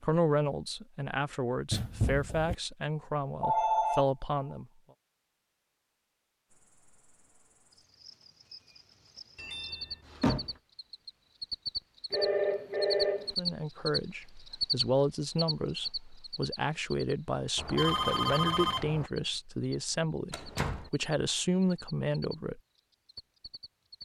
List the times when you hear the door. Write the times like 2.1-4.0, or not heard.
1.7-2.5, 9.3-10.5, 20.3-20.9.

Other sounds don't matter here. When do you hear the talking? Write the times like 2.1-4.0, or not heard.
0.0-4.7, 13.3-22.6.